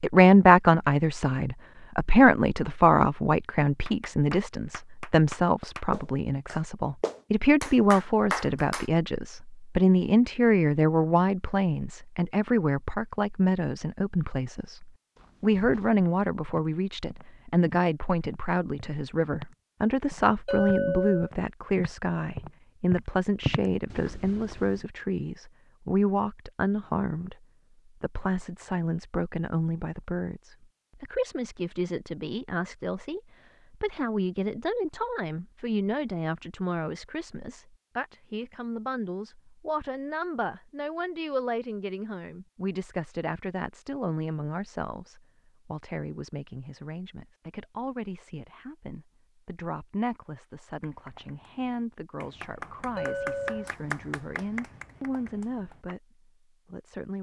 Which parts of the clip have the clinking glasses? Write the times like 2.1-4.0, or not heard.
20.4-21.3, 53.0-53.7.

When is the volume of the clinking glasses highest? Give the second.
21 s.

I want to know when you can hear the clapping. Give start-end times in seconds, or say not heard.
3.9-8.9, 50.8-56.0.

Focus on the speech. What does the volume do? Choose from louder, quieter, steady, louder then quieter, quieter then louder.
quieter.